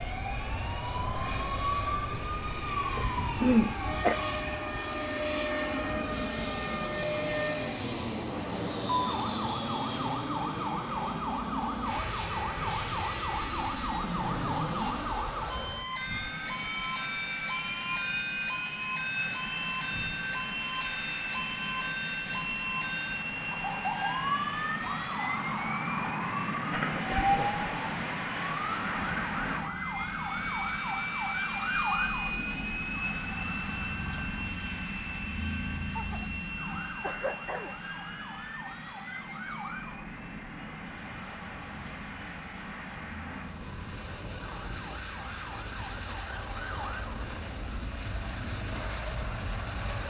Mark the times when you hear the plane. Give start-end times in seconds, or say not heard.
0.0-50.0.